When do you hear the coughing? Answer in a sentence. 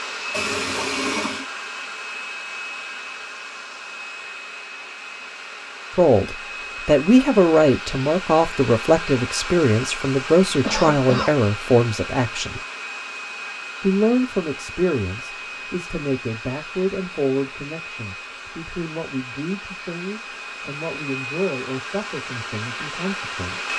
You can hear the coughing from 10.6 to 11.3 s.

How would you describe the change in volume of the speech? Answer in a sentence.
The loudness of the speech goes down.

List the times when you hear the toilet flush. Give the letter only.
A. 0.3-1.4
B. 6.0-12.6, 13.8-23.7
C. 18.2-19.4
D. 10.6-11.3
A.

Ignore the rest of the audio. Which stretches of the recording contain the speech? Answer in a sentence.
The speech can be heard from 6.0 to 12.6 s and from 13.8 to 23.7 s.